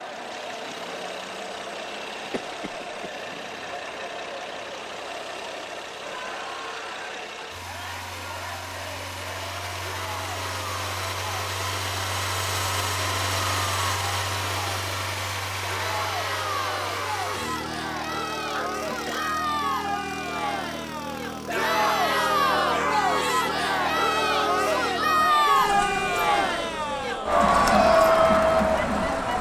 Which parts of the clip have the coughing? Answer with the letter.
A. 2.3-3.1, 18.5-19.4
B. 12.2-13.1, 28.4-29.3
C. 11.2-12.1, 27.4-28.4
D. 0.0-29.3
A.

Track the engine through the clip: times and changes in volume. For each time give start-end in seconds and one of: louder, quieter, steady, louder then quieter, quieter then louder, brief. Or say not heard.
0.0-29.3 louder then quieter.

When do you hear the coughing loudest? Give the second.
19 s.